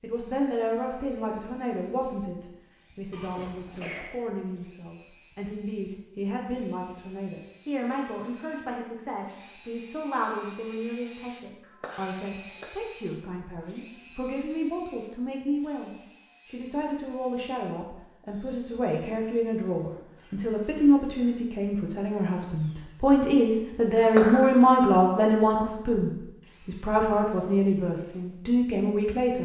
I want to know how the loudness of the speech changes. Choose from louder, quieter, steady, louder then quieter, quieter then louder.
louder.